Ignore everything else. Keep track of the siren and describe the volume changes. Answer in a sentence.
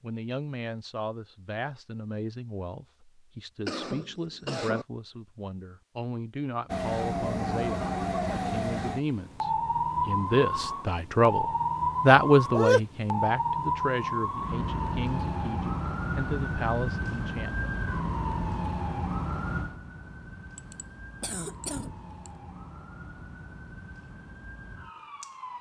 The volume of the siren goes down.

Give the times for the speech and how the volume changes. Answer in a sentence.
You can hear the speech from 0.0 to 17.7 s, getting louder then quieter.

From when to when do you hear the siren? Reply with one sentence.
The siren can be heard from 6.7 to 25.5 s.